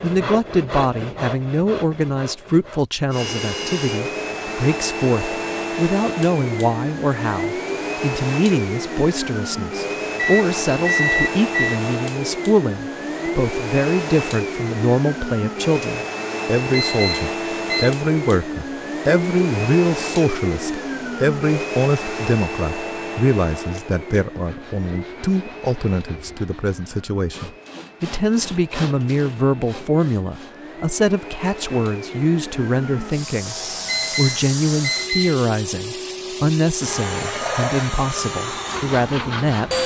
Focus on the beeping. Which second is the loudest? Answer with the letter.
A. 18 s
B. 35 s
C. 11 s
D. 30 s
C.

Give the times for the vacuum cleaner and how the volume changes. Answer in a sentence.
You can hear the vacuum cleaner from 3.1 to 39.8 s, getting quieter then louder.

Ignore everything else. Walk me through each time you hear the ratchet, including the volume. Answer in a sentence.
You can't hear the ratchet here.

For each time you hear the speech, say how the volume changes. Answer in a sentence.
You can hear the speech from 0.0 to 39.8 s, at a steady volume.